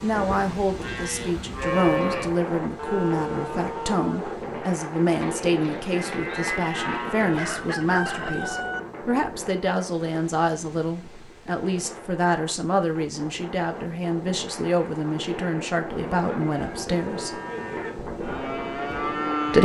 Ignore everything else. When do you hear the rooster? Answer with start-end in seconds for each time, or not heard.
7.3-8.8.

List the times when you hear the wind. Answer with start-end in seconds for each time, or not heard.
0.0-19.6.